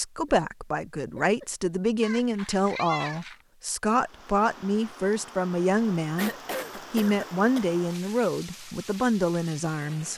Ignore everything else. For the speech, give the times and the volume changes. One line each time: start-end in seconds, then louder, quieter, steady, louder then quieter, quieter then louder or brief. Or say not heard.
0.0-10.1 steady.